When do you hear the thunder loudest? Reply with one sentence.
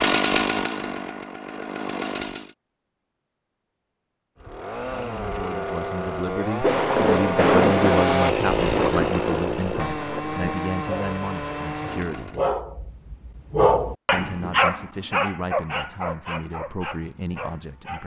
The volume of the thunder peaks at 8 seconds.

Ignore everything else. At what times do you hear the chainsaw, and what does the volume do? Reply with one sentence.
You can hear the chainsaw briefly from 0.0 to 2.5 s; and from 4.3 to 12.5 s, getting louder then quieter.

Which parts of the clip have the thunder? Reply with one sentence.
The thunder can be heard from 6.6 to 10.6 s.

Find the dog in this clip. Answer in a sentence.
You can hear the dog from 10.8 to 18.0 s.